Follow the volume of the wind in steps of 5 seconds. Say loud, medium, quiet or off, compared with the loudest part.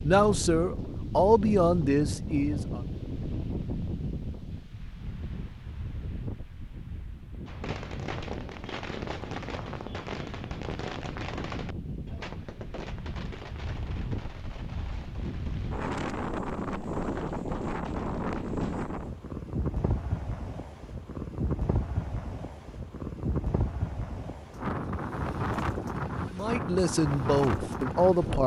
loud, medium, medium, loud, loud, loud.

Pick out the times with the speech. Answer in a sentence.
You can hear the speech from 0.0 to 2.8 s and from 26.3 to 28.4 s.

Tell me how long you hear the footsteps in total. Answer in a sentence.
You can't hear the footsteps here.